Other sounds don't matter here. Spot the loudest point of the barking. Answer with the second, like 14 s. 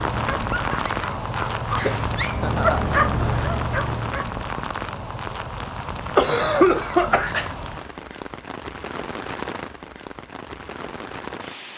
3 s.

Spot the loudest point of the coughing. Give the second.
7 s.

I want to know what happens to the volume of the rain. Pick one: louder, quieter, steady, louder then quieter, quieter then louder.
quieter.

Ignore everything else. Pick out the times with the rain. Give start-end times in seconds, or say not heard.
0.0-11.7.